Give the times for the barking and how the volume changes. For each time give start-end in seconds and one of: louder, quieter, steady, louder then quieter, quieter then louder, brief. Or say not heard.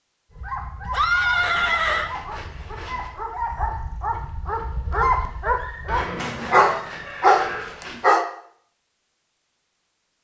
0.3-8.2 louder.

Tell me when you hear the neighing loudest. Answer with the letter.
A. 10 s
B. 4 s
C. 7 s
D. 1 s
D.